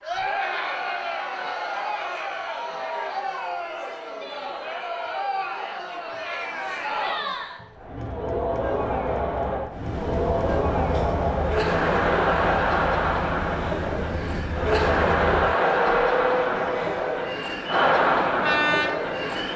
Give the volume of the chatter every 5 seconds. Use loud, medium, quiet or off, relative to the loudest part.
medium, medium, loud, loud.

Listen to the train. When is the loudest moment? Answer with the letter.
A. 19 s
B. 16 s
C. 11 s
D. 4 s
B.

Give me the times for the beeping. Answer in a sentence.
You can't hear the beeping here.